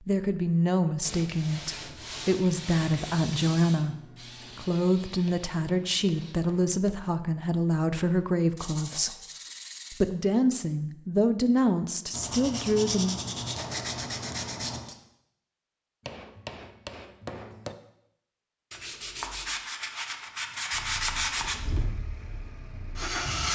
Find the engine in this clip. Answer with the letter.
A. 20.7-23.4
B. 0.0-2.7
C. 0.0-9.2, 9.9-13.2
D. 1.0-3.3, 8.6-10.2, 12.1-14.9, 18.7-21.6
A.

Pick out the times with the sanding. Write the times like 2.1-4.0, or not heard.
1.0-3.3, 8.6-10.2, 12.1-14.9, 18.7-21.6.